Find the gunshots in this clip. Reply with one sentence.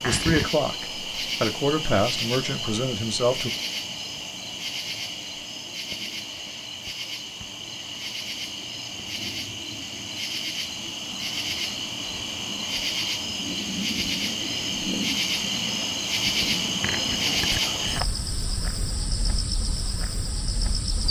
The gunshots can't be heard in this clip.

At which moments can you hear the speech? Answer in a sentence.
The speech can be heard from 0.0 to 3.5 s.